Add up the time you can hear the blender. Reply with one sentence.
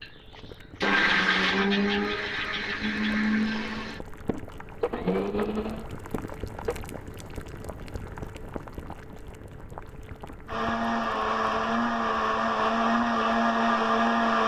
The blender can be heard for 11 seconds in total.